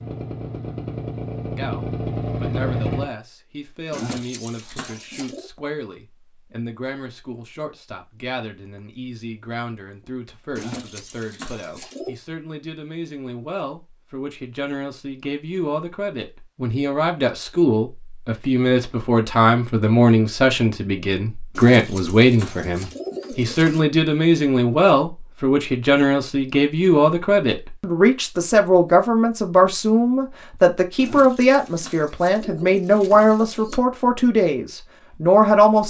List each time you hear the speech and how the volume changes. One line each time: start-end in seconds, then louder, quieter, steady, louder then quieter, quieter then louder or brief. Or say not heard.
1.6-35.8 louder.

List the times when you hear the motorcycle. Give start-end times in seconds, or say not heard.
0.0-3.1.